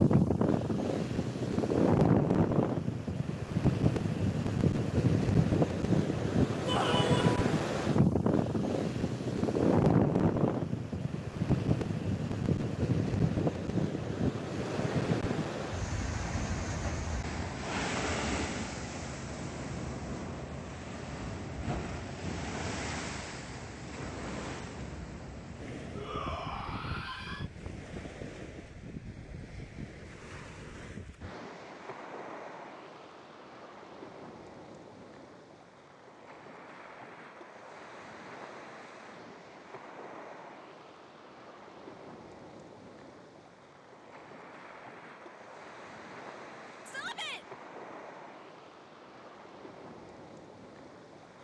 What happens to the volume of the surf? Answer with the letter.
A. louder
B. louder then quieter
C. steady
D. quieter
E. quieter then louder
D.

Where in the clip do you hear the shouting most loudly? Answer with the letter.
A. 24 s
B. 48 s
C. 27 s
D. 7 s
D.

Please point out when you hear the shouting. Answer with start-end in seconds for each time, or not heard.
6.7-7.5, 25.9-27.4, 46.9-47.5.